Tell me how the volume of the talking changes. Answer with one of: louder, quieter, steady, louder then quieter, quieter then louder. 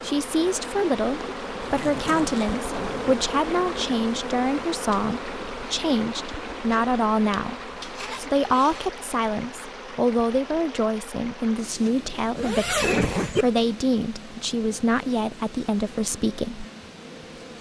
steady.